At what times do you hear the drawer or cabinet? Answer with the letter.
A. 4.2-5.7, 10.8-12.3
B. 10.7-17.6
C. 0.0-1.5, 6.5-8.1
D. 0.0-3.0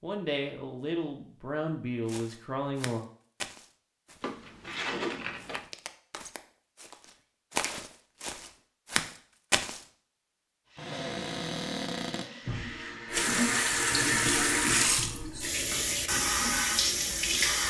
A.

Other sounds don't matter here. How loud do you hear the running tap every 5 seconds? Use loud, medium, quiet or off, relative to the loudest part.
off, off, loud, loud.